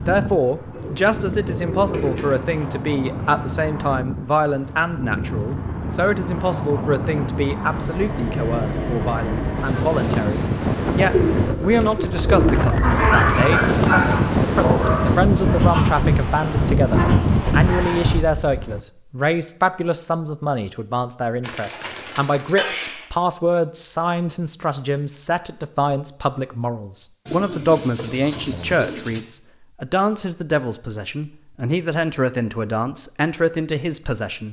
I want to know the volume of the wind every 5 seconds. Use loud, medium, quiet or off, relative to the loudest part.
medium, medium, loud, loud, off, off, off.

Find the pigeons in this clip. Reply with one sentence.
The pigeons can be heard from 0.7 to 2.4 s, from 11.1 to 12.6 s, from 21.4 to 23.1 s and from 27.2 to 29.2 s.